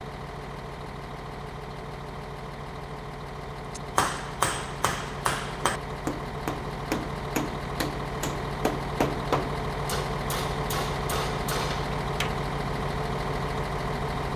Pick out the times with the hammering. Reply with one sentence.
The hammering can be heard from 3.8 to 12.4 s.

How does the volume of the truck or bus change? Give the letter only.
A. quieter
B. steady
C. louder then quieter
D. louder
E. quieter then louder
D.